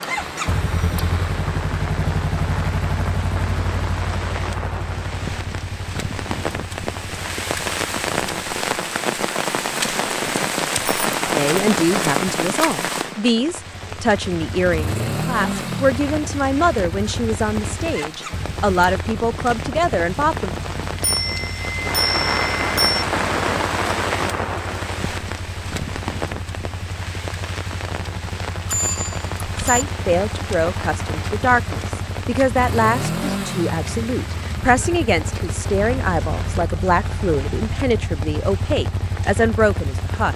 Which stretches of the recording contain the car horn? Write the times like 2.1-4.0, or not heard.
not heard.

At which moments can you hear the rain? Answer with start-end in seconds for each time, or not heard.
0.0-40.3.